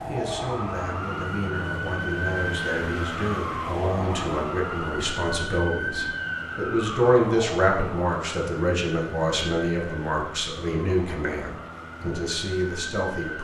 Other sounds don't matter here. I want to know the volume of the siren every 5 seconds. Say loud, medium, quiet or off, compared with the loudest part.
loud, loud, medium.